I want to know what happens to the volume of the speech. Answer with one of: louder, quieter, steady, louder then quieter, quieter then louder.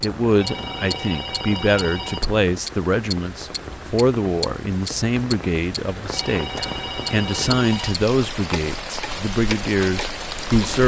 steady.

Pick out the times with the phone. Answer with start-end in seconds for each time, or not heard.
0.2-2.2, 6.0-8.0.